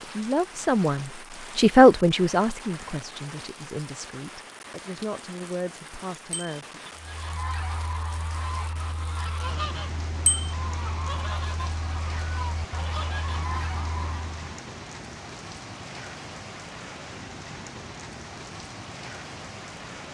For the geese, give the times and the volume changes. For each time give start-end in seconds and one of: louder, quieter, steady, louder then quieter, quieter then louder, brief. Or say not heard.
7.0-14.3 steady.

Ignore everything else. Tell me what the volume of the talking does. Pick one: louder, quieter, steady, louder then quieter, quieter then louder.
louder then quieter.